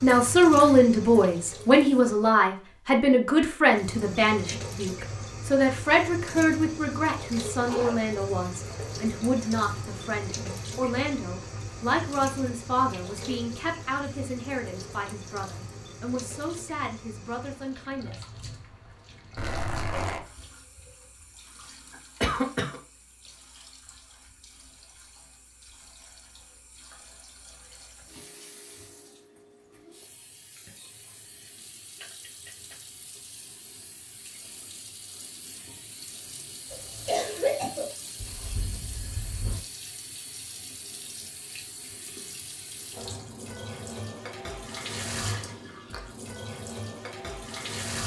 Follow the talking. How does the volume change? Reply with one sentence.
The loudness of the talking goes down.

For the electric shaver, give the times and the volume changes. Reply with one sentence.
You can't hear the electric shaver here.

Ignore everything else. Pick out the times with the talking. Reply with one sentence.
You can hear the talking from 0.0 to 18.2 s.